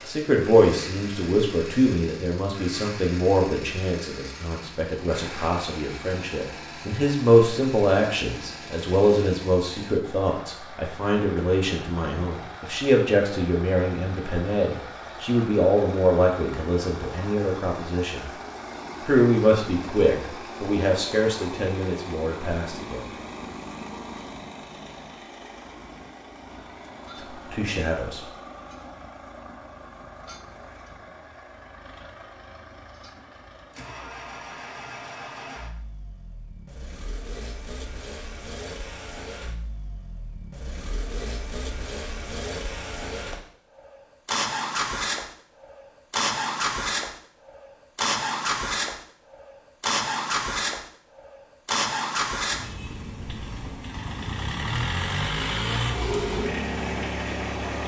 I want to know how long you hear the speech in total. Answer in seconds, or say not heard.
23 s.